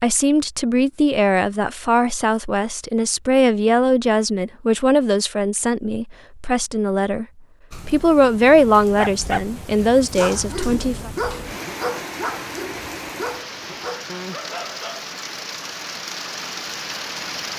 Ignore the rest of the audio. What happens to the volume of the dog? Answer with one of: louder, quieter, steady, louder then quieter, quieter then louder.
quieter.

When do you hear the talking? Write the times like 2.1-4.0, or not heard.
0.0-7.2, 7.8-11.1.